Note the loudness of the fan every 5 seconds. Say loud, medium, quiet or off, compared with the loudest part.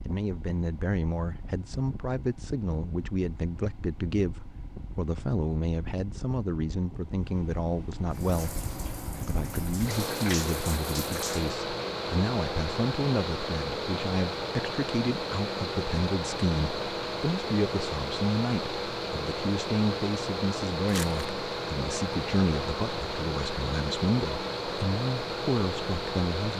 quiet, medium, loud, loud, loud, loud.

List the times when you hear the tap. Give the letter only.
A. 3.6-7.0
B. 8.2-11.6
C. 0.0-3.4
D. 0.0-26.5
B.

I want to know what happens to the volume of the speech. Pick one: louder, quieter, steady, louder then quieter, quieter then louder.
steady.